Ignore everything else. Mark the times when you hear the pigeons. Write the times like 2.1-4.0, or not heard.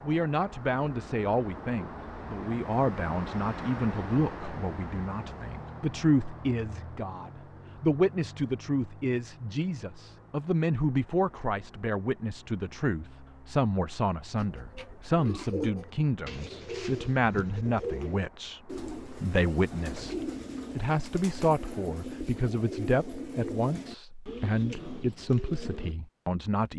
14.3-25.9.